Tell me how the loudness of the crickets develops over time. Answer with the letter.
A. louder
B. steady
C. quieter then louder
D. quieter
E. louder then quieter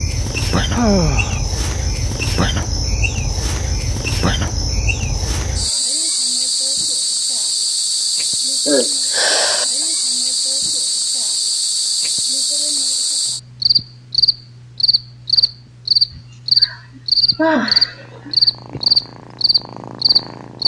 A.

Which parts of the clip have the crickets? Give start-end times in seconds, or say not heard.
0.0-20.6.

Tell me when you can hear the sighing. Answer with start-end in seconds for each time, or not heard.
0.7-1.4, 8.7-9.8, 16.1-18.8.